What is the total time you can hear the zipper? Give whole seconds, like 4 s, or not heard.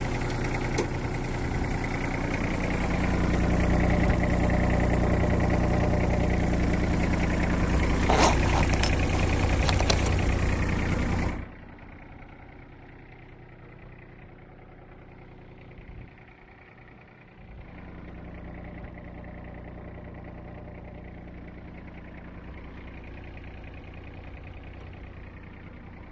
2 s.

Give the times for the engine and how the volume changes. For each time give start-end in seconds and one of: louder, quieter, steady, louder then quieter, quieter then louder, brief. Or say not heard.
0.0-26.0 quieter.